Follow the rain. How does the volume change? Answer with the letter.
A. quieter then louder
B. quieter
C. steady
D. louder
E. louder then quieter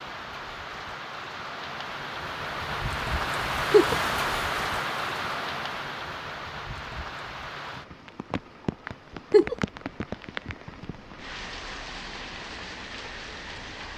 E.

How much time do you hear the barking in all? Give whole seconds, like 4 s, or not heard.
not heard.